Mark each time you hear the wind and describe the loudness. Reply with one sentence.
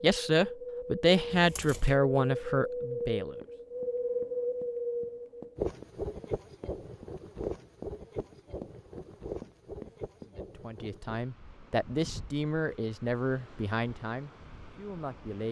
The wind can be heard from 0.0 to 15.4 s, getting quieter.